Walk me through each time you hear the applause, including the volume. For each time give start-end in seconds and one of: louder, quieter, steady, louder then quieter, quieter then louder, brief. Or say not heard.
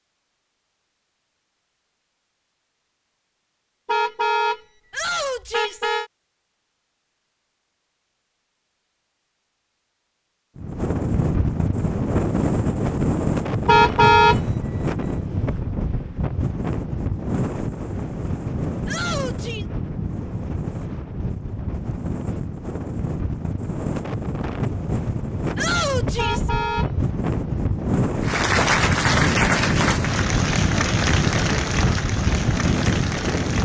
28.2-33.6 quieter.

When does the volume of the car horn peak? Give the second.
14 s.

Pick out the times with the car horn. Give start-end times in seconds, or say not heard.
3.9-4.6, 5.5-6.1, 13.7-14.4, 26.1-26.9.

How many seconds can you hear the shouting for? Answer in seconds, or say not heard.
3 s.